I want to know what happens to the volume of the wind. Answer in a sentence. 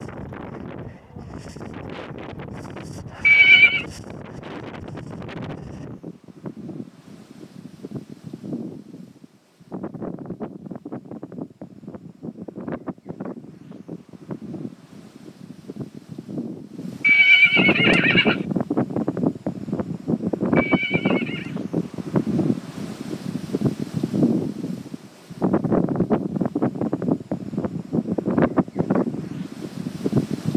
The loudness of the wind goes up.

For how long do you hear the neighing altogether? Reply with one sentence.
You can hear the neighing for 3 seconds altogether.